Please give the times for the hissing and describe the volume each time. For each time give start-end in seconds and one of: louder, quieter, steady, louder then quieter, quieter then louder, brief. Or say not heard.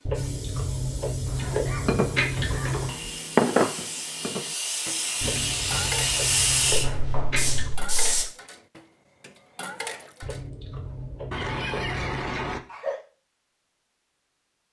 0.0-8.2 louder.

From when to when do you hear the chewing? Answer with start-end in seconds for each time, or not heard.
0.1-3.0, 5.2-7.8, 10.2-12.4.